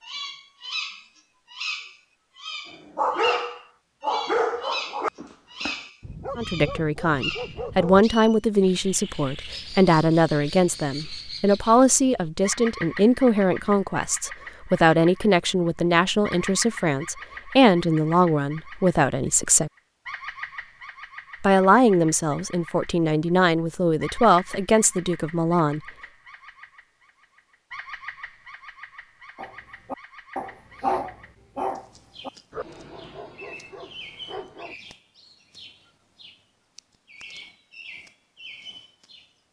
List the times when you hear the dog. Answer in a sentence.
You can hear the dog from 2.7 to 8.1 s and from 29.4 to 34.8 s.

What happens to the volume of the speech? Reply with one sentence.
The volume of the speech stays about the same.